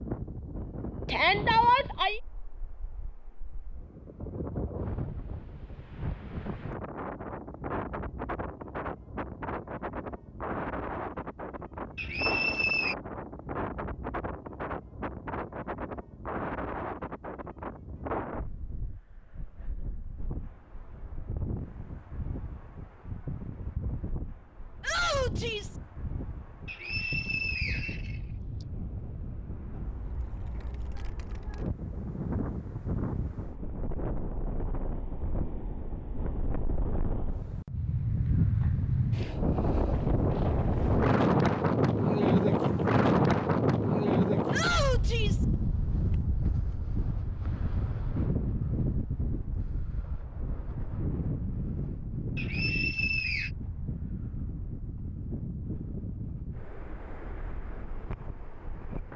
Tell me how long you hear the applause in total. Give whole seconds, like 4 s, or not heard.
not heard.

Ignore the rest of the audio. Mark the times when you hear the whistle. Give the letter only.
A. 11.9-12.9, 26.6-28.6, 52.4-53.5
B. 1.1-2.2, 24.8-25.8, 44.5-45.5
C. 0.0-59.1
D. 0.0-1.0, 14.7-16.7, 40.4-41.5
A.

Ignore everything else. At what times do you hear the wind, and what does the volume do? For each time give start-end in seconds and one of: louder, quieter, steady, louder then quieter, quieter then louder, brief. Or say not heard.
0.0-59.1 louder then quieter.